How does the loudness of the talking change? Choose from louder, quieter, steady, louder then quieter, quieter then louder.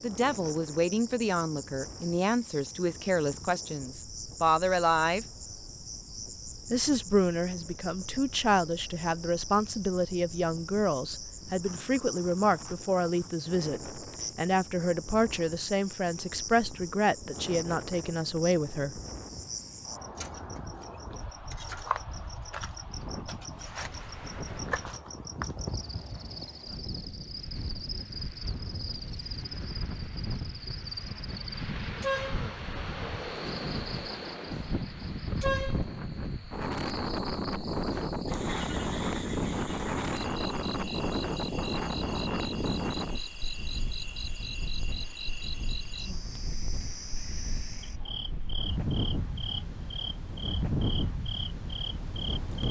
steady.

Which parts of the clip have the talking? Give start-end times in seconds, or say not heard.
0.0-5.2, 6.7-19.0.